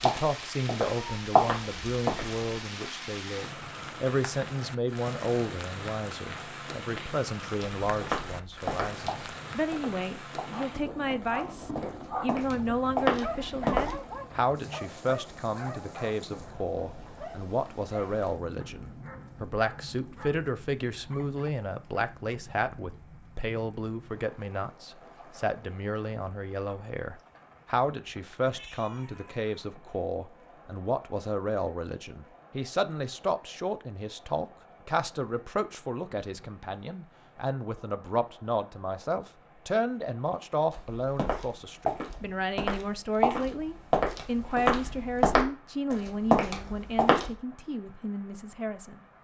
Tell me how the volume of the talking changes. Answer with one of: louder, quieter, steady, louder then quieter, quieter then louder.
steady.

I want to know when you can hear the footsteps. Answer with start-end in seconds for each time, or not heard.
0.0-2.5, 7.6-13.9, 40.7-47.3.